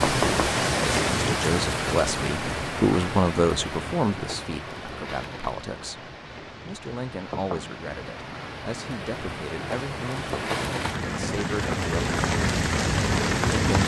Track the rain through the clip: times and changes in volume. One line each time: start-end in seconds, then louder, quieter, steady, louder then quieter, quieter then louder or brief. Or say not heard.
0.0-13.8 quieter then louder.